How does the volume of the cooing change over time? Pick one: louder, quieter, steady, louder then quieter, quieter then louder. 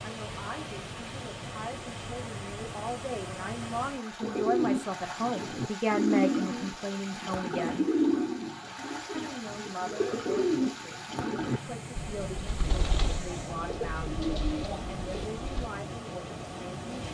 quieter.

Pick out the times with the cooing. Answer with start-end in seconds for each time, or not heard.
4.2-15.7.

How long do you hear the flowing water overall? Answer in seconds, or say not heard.
17 s.